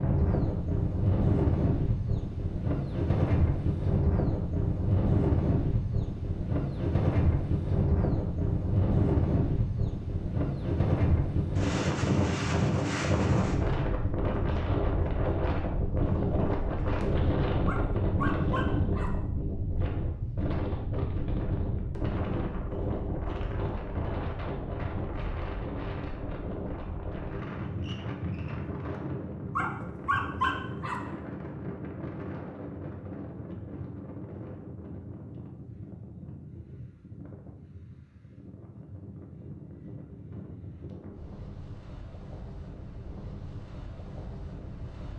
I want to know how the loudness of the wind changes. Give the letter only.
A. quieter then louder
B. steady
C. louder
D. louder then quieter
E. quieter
E.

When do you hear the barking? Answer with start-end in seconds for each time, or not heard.
17.6-19.1, 29.6-30.9.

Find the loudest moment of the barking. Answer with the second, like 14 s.
30 s.